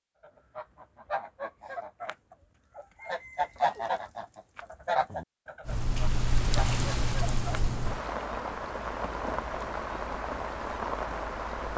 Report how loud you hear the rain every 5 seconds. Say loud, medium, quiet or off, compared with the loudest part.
off, loud, loud.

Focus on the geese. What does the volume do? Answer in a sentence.
The loudness of the geese goes up, then down.